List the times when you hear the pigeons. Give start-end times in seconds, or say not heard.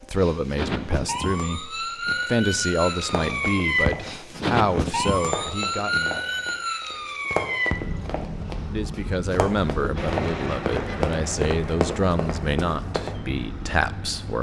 not heard.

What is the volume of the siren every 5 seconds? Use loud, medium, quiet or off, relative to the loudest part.
loud, loud, medium.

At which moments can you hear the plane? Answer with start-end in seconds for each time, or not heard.
9.9-14.3.